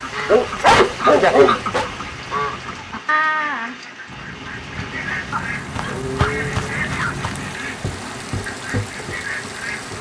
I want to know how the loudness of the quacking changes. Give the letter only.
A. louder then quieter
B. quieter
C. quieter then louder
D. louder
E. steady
B.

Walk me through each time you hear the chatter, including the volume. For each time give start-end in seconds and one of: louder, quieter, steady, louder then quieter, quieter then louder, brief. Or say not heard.
not heard.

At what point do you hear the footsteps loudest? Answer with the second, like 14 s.
6 s.